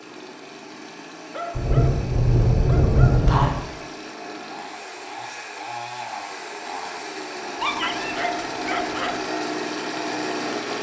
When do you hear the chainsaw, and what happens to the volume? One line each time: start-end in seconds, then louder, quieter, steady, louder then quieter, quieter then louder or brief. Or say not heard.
0.0-10.7 louder.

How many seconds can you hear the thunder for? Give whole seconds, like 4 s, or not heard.
2 s.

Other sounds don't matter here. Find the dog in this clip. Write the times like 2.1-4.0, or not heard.
1.3-3.3, 7.6-9.2.